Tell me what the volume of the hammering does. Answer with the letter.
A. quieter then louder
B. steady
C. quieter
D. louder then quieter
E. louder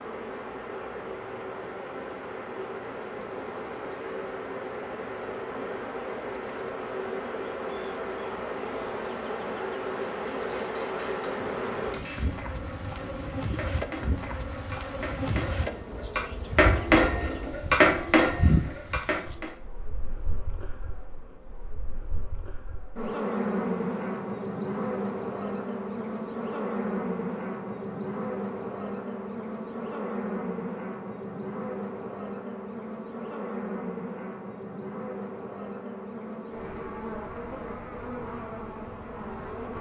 E.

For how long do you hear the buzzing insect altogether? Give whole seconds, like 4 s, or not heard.
40 s.